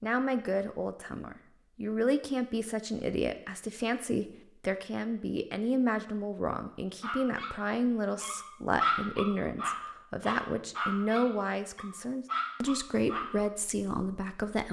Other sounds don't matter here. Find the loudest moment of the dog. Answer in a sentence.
The volume of the dog peaks at 9 seconds.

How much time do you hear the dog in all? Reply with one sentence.
You can hear the dog for 6 seconds altogether.